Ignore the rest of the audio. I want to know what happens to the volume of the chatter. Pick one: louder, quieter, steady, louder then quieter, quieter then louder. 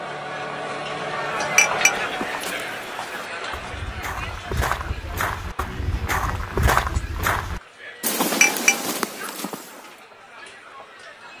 quieter.